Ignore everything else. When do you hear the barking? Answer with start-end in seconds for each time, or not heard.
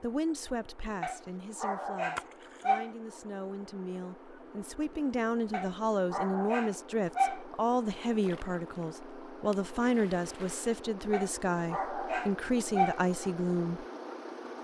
1.0-2.9, 5.5-7.5, 11.1-13.1.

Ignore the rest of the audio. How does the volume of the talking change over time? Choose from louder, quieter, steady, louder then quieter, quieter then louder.
louder.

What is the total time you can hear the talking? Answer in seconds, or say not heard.
14 s.